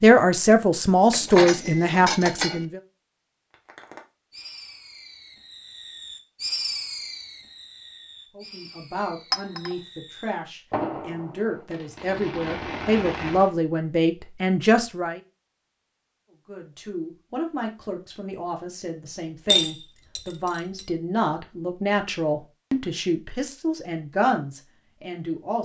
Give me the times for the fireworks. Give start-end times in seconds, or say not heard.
3.5-13.5.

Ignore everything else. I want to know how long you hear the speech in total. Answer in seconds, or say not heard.
19 s.